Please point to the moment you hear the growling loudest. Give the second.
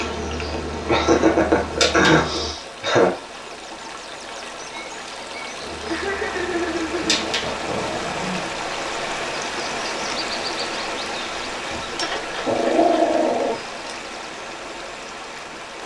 13 s.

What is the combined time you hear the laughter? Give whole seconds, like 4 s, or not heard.
5 s.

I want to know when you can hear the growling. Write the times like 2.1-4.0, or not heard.
1.7-2.2, 7.0-8.4, 11.7-13.6.